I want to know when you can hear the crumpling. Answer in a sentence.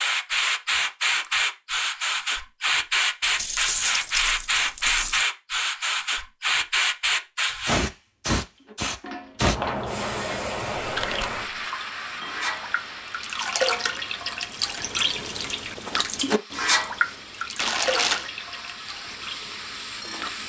You can hear the crumpling from 3.2 to 5.2 s, from 10.8 to 11.4 s and from 17.6 to 18.2 s.